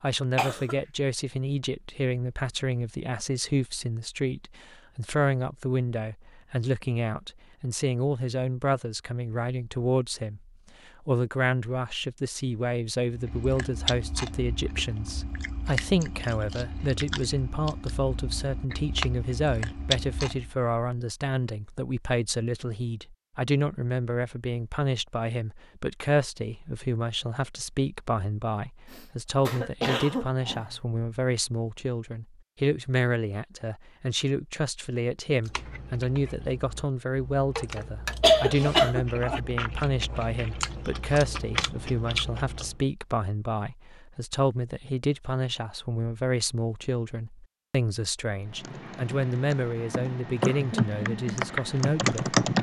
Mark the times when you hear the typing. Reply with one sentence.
The typing can be heard from 48.6 to 52.5 s.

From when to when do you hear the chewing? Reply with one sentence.
You can hear the chewing from 13.1 to 20.6 s and from 35.4 to 42.8 s.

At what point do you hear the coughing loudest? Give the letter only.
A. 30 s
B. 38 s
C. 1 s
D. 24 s
B.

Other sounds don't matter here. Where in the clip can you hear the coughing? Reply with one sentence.
You can hear the coughing from 0.3 to 0.8 s, from 28.9 to 30.8 s and from 37.5 to 39.4 s.